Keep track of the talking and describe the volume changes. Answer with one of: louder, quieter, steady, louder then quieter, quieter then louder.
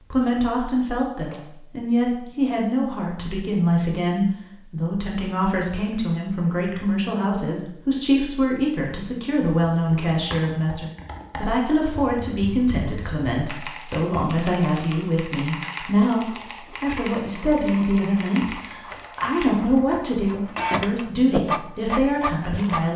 steady.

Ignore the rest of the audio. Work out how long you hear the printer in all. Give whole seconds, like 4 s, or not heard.
7 s.